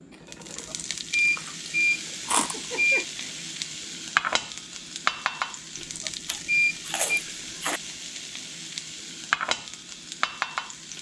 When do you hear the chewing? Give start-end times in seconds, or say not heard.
0.6-2.6, 6.2-7.8.